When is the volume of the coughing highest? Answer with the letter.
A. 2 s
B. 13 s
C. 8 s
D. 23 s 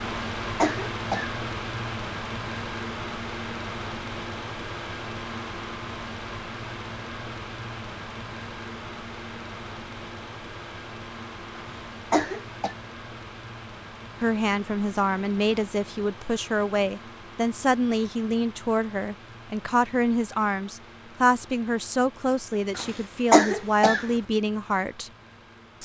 D.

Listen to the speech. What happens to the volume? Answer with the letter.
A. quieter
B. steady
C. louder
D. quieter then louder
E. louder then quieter
B.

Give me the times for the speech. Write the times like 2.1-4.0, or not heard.
14.2-25.1.